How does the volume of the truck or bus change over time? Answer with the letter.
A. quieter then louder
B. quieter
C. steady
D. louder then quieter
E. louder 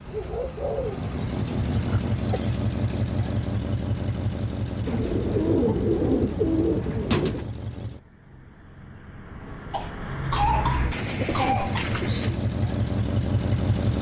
A.